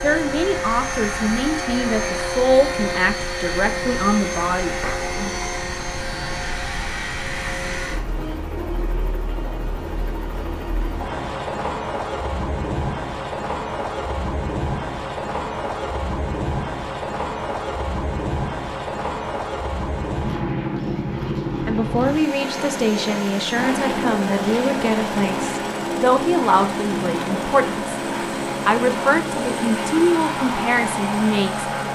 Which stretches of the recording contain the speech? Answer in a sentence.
The speech can be heard from 0.0 to 5.4 s, from 21.6 to 27.9 s and from 28.6 to 31.7 s.